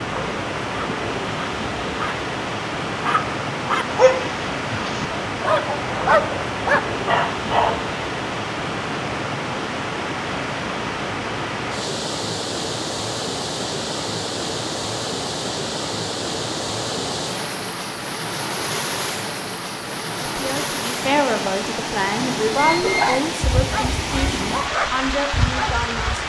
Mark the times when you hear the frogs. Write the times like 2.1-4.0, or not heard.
not heard.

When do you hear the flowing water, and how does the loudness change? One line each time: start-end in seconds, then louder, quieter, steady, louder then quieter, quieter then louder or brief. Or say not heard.
0.0-26.2 steady.